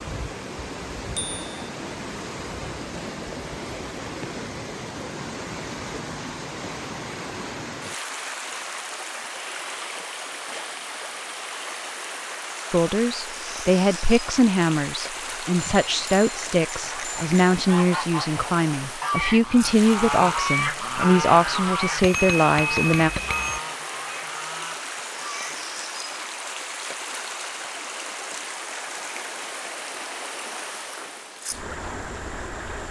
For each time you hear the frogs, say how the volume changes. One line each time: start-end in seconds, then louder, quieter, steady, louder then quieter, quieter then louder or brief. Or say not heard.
not heard.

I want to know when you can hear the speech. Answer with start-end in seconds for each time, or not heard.
12.7-23.1.